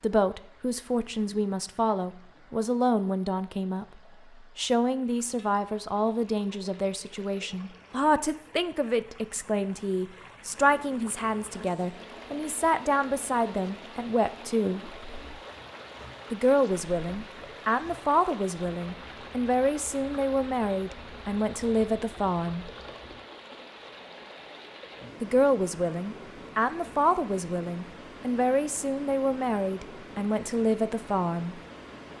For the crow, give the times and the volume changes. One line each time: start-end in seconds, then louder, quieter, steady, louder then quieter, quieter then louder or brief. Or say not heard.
not heard.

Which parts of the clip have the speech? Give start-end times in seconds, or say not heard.
0.0-3.9, 4.5-14.9, 16.3-22.7, 25.2-31.6.